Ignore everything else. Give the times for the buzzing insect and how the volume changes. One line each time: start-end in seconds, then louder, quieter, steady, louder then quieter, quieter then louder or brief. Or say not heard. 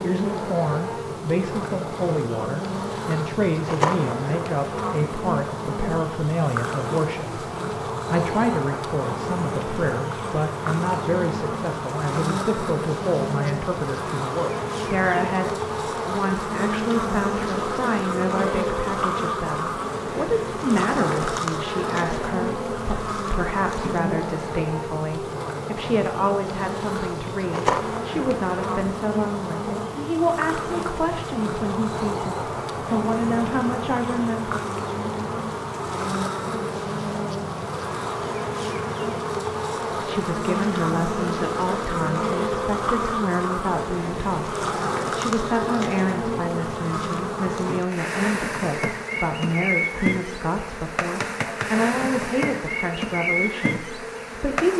0.0-54.7 steady.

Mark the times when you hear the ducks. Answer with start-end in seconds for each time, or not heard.
not heard.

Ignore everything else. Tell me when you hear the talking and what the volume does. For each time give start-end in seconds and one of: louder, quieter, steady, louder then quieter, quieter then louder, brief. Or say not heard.
0.0-34.6 steady
40.0-54.7 steady.